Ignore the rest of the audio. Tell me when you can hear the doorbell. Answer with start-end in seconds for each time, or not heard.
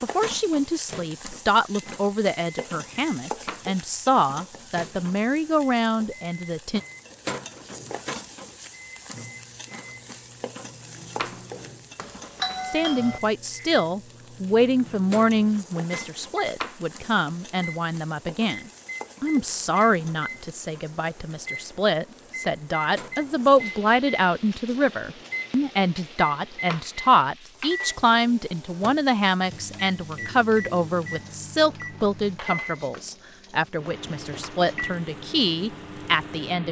11.9-13.2.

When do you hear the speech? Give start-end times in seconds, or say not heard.
0.0-6.8, 12.7-36.6.